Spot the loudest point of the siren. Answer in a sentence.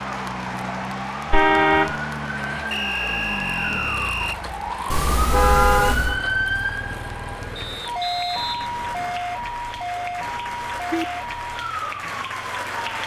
The loudest moment of the siren is at 6 seconds.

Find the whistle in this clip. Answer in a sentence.
You can hear the whistle from 2.7 to 4.4 s and from 7.5 to 9.2 s.